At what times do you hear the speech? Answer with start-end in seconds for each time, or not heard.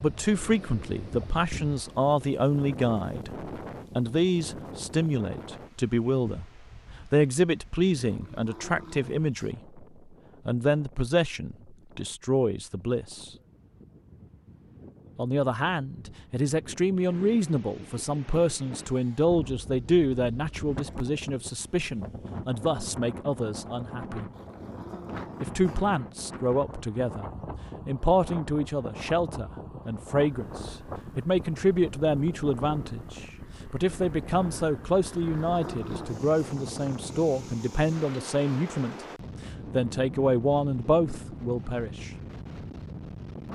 0.0-9.8, 10.4-13.3, 15.2-24.2, 25.4-39.0, 39.7-42.1.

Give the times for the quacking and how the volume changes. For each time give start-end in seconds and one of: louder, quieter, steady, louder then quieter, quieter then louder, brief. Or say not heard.
not heard.